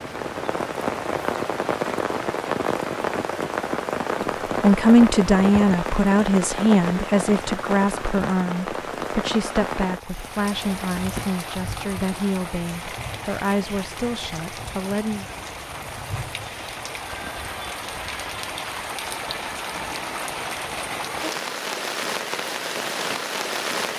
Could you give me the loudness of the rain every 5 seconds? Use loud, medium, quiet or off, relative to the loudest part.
loud, loud, medium, medium, loud.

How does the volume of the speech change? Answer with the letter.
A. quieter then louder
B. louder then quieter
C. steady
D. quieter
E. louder
D.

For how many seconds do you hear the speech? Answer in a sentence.
The speech can be heard for 11 seconds in total.